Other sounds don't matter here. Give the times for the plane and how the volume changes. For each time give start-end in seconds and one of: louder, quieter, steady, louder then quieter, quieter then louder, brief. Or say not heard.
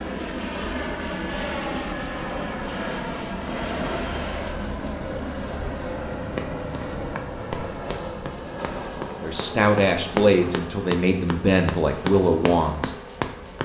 0.0-13.6 quieter.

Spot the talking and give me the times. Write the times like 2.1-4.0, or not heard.
9.1-12.9.